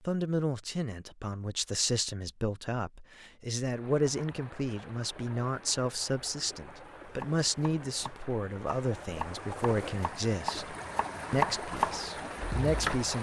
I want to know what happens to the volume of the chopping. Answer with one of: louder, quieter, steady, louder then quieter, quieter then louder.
louder.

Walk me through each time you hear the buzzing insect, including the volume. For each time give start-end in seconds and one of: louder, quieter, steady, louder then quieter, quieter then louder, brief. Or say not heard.
not heard.